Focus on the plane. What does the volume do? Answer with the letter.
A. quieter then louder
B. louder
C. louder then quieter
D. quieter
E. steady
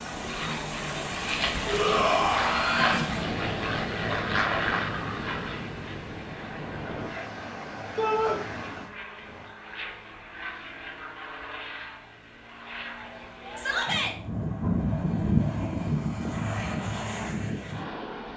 A.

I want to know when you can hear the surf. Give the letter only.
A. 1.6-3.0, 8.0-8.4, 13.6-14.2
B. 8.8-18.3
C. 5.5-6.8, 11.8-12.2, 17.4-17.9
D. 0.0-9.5
D.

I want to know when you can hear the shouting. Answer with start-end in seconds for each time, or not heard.
1.6-3.0, 8.0-8.4, 13.6-14.2.